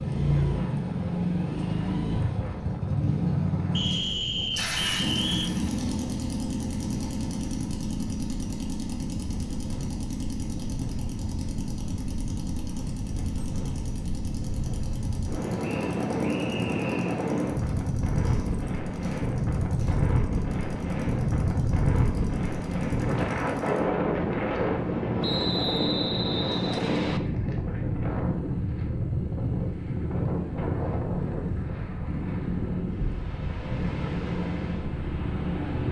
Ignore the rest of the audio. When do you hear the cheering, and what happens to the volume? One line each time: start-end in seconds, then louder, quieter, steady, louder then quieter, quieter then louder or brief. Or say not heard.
not heard.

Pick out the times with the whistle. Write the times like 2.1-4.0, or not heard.
3.8-5.5, 15.6-17.2, 25.2-27.2.